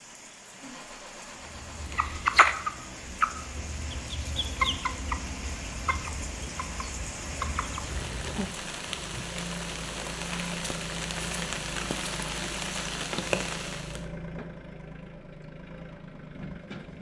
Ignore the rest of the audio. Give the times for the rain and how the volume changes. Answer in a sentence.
The rain can be heard from 0.0 to 14.1 s, getting louder.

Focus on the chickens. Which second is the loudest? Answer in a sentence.
The loudest moment of the chickens is at 2 seconds.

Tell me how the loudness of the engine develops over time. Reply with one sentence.
The volume of the engine goes up.